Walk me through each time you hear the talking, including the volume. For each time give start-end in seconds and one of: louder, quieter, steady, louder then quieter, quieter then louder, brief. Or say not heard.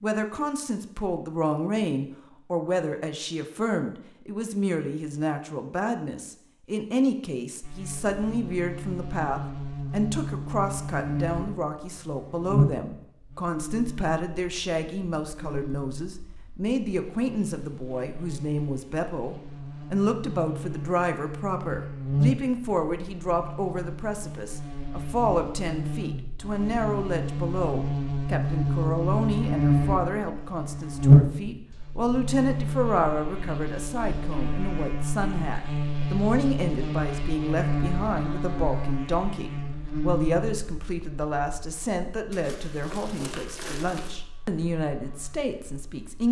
0.0-46.2 steady.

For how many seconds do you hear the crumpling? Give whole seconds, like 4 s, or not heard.
2 s.